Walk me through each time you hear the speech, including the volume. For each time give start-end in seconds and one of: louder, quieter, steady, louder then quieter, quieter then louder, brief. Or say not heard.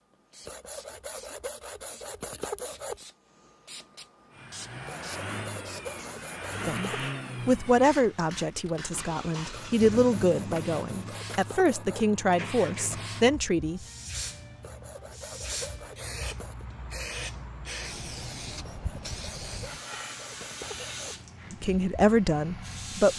6.7-13.8 quieter then louder
21.5-23.1 brief.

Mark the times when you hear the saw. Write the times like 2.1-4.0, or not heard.
0.5-3.0, 4.8-7.1, 9.5-12.1, 14.6-16.6, 18.6-21.1.